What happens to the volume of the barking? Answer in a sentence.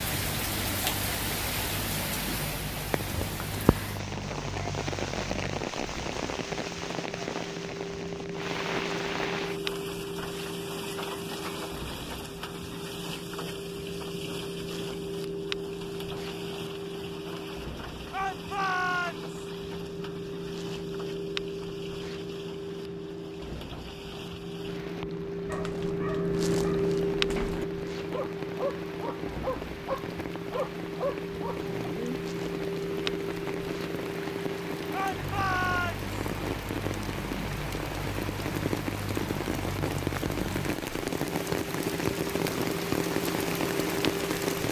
The volume of the barking goes up.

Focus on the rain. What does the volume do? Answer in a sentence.
The loudness of the rain goes down, then up.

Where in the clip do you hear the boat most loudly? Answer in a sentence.
The loudest moment of the boat is at 27 seconds.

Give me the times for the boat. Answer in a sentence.
You can hear the boat from 0.0 to 44.6 s.